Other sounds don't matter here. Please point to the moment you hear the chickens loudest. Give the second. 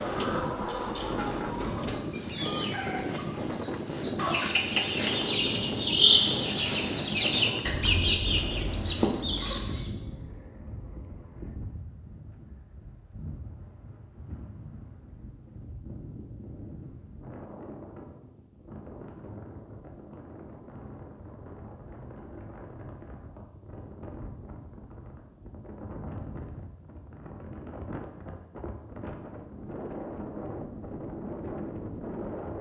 6 s.